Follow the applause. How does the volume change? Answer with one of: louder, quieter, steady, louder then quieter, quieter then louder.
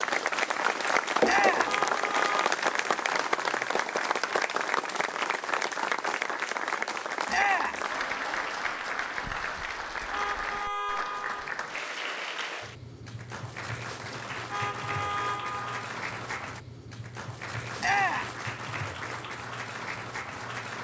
quieter.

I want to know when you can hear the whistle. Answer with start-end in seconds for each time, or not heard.
not heard.